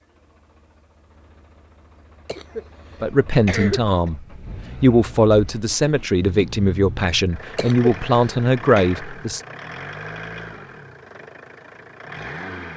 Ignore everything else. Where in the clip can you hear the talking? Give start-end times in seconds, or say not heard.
3.0-9.4.